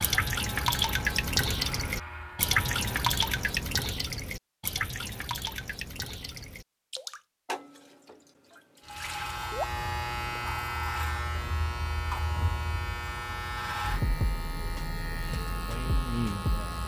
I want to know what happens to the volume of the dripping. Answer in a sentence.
The volume of the dripping goes down.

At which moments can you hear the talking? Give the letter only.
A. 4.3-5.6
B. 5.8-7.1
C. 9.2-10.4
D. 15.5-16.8
D.